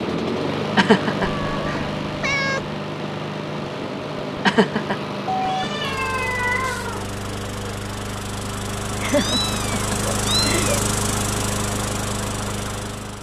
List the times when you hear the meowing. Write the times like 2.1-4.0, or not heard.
1.2-2.8, 5.2-7.1, 9.1-10.7.